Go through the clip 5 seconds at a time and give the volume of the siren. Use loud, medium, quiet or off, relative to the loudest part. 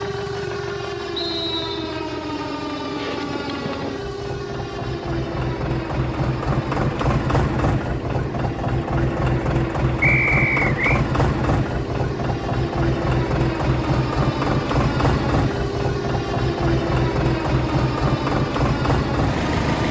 loud, medium, loud, loud.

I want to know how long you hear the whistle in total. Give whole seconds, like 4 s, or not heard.
2 s.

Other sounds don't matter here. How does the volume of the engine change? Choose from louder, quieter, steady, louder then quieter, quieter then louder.
louder.